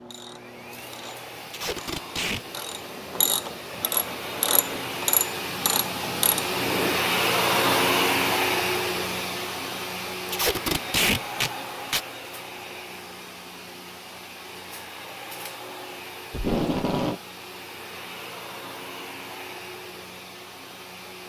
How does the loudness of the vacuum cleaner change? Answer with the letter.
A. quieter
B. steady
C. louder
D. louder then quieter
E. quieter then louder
D.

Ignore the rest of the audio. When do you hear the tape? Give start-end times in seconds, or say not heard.
1.5-2.4, 10.2-12.0, 16.3-17.2.